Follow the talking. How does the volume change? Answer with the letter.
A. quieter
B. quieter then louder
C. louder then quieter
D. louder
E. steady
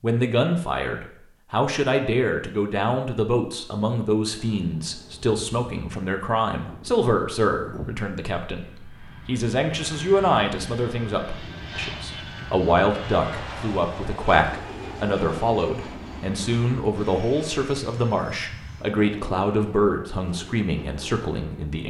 E.